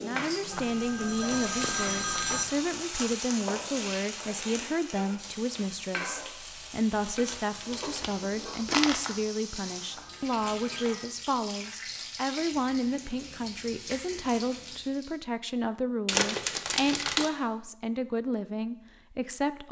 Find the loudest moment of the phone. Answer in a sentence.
The loudest moment of the phone is at 2 seconds.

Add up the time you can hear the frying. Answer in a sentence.
You can hear the frying for 15 seconds altogether.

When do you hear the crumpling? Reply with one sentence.
You can hear the crumpling from 1.6 to 2.5 s, from 7.2 to 9.2 s and from 16.1 to 17.3 s.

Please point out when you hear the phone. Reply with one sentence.
You can hear the phone from 0.5 to 2.5 s and from 9.9 to 11.1 s.